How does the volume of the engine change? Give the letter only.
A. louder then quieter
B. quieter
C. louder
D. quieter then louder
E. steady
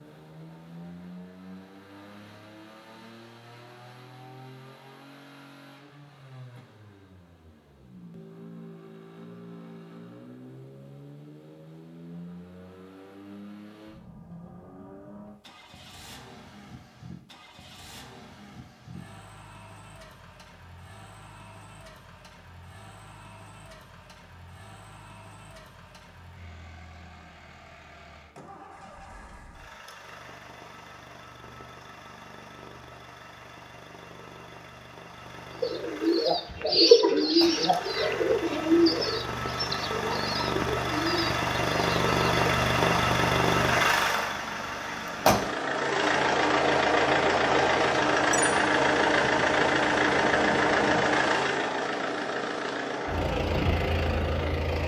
C.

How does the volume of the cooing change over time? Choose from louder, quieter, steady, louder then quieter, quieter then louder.
quieter.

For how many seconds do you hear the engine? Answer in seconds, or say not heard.
55 s.